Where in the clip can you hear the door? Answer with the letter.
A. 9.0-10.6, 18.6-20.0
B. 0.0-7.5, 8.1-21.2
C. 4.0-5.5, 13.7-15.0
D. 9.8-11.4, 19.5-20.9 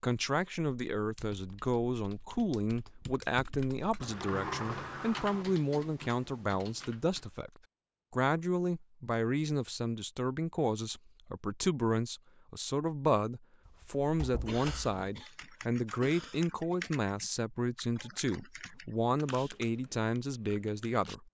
C.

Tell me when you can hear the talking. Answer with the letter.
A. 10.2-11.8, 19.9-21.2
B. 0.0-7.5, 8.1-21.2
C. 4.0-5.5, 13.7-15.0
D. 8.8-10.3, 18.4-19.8
B.